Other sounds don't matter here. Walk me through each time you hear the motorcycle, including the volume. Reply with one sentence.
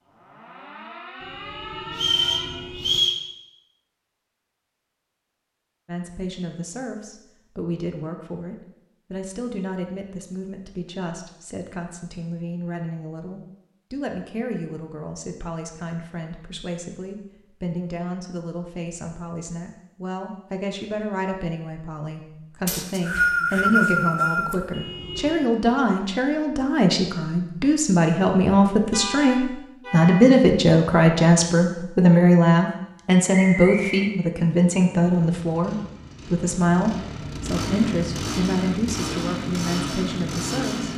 You can hear the motorcycle from 34.7 to 40.9 s, getting louder.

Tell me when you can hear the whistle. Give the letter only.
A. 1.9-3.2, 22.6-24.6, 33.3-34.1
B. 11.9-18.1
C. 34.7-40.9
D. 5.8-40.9
A.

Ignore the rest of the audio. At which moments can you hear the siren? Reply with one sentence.
The siren can be heard from 0.0 to 2.7 s.